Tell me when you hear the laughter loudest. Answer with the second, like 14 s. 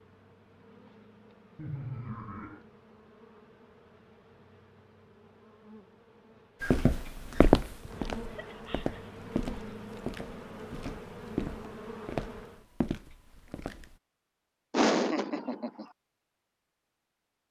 15 s.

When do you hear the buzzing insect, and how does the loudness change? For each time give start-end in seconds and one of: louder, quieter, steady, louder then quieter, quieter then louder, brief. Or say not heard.
0.0-12.7 louder.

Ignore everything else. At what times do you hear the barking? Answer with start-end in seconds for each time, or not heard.
not heard.